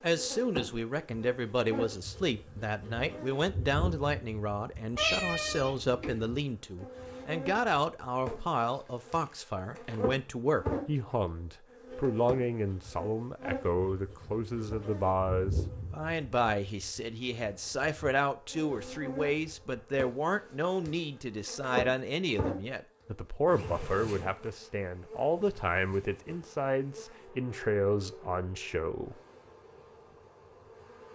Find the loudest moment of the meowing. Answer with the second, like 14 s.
5 s.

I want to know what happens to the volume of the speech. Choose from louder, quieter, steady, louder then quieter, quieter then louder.
steady.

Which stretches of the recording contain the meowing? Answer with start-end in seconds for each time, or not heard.
5.0-6.4.